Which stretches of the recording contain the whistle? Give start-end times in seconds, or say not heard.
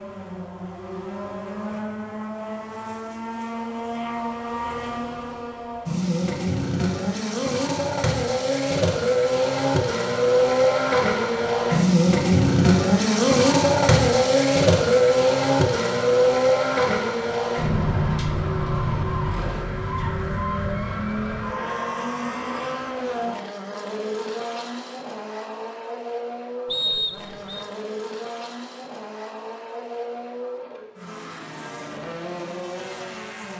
26.7-27.6.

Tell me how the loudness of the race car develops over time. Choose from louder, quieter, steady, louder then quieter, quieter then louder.
louder then quieter.